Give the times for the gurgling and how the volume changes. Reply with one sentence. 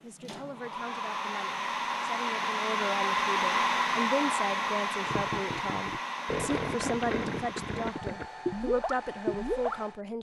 You can hear the gurgling from 5.0 to 9.8 s, getting louder.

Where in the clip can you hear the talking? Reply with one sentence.
The talking can be heard from 0.0 to 10.1 s.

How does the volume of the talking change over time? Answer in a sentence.
The loudness of the talking goes up.